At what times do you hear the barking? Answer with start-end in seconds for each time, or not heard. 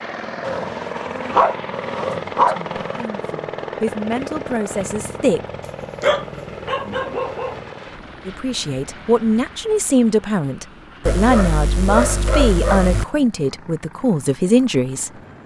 0.4-3.0, 5.8-7.6, 11.1-13.1.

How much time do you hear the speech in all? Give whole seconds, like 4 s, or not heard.
10 s.